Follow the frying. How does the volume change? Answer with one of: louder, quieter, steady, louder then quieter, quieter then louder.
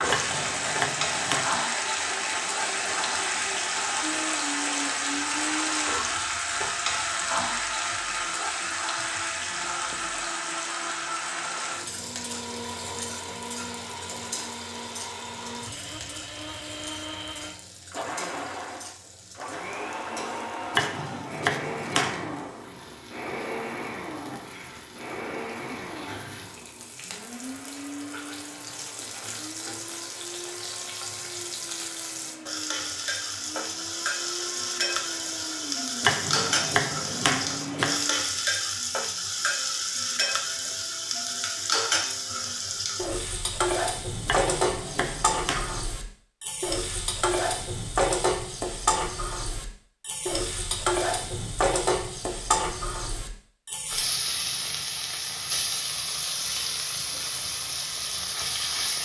quieter then louder.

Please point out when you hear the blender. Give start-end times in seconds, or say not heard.
0.1-38.3.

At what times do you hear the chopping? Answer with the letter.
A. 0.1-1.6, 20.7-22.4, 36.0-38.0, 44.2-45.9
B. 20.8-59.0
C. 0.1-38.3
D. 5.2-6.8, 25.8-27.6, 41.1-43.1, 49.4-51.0
A.